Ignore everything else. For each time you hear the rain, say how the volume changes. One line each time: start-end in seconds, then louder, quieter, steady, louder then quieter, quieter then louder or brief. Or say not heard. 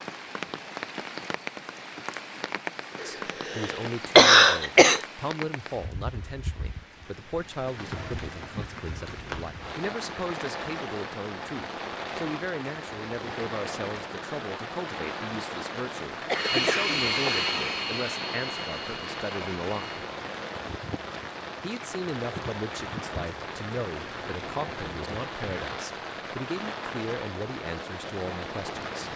0.0-29.1 steady.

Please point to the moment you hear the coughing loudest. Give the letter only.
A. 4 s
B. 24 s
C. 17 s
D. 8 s
A.